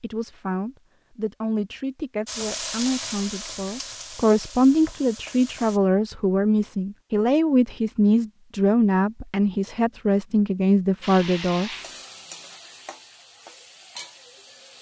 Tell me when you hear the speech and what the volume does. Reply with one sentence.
The speech can be heard from 0.0 to 11.7 s, getting louder.